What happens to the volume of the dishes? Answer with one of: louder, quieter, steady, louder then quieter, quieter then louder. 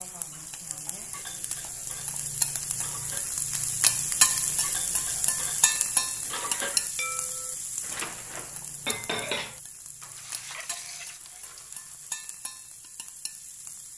louder then quieter.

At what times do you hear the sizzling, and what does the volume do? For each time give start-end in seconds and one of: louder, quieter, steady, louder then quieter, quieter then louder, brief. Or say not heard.
0.0-13.9 louder then quieter.